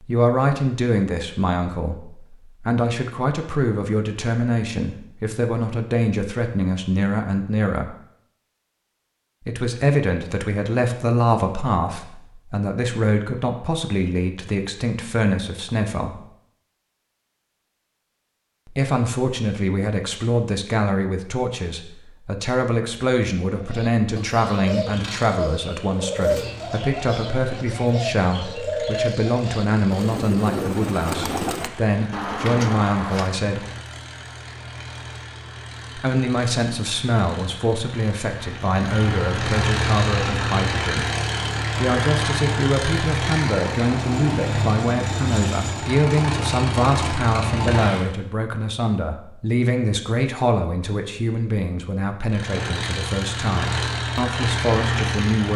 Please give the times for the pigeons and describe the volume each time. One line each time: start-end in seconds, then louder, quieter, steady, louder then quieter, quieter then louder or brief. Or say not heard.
23.6-33.3 steady.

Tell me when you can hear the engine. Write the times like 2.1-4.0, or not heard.
24.8-48.1, 52.2-55.5.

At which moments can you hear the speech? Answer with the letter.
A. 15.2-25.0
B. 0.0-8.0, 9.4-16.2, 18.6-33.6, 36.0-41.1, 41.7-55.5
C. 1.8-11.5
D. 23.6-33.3
B.